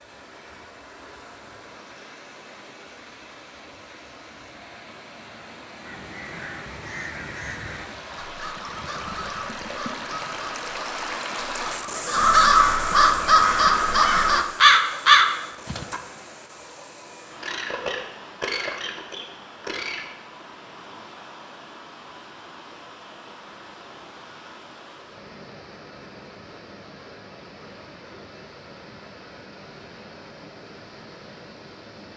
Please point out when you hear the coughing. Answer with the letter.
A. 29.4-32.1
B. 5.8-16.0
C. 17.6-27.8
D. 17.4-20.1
D.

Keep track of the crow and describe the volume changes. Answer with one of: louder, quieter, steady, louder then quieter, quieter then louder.
louder.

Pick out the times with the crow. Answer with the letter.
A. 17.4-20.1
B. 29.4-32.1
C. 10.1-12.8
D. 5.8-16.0
D.